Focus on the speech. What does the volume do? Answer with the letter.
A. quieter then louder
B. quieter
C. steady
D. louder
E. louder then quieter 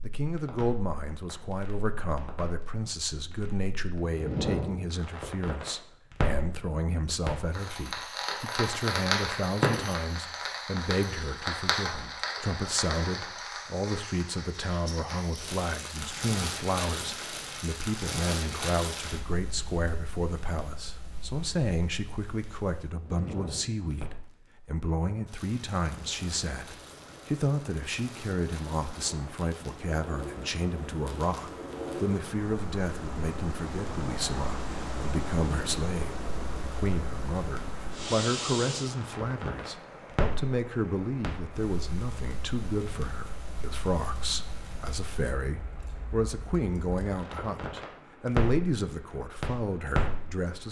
C.